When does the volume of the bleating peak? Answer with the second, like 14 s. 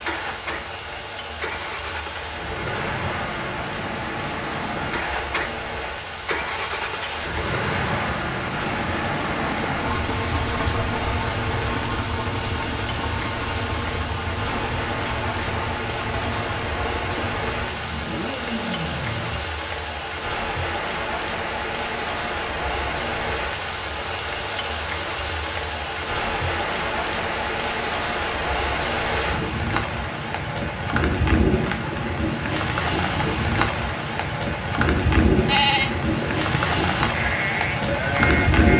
36 s.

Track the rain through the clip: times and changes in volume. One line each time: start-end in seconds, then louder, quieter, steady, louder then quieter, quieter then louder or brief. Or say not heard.
0.0-38.7 louder.